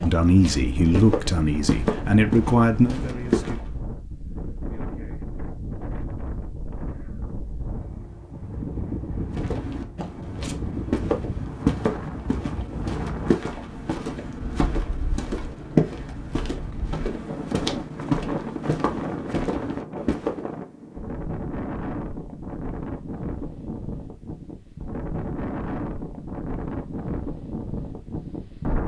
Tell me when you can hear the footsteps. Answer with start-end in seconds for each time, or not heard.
0.0-3.7, 9.3-20.4.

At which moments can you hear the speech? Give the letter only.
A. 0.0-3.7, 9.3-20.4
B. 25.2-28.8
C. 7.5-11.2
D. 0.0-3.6
D.